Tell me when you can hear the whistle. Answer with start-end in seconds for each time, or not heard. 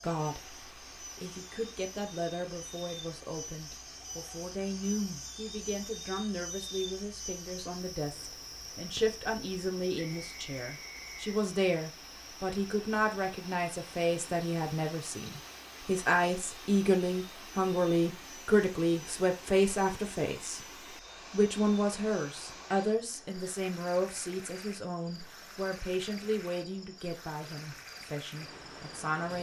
9.9-11.2.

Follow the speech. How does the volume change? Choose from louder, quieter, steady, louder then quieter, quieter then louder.
louder then quieter.